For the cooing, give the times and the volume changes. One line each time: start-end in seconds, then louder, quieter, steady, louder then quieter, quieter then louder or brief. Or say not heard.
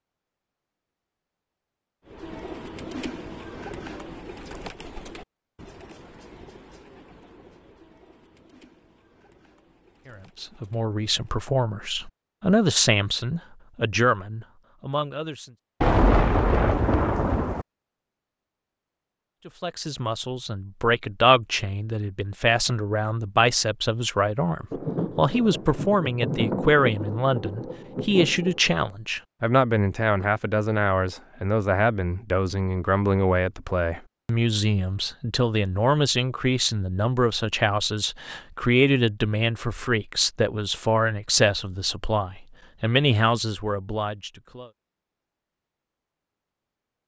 2.0-11.5 quieter.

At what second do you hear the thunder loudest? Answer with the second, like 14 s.
16 s.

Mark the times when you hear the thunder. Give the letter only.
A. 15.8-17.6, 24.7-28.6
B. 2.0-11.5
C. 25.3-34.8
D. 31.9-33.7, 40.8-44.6
A.